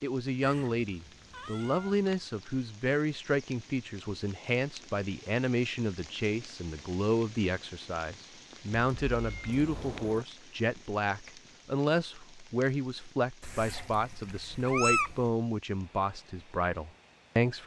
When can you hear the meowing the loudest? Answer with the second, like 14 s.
15 s.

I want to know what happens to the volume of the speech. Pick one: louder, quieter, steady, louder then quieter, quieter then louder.
steady.